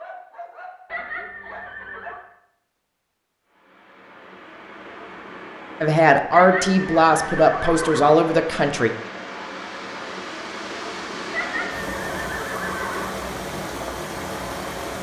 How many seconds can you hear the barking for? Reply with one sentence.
You can hear the barking for 2 seconds altogether.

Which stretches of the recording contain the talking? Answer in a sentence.
The talking can be heard from 5.8 to 8.9 s.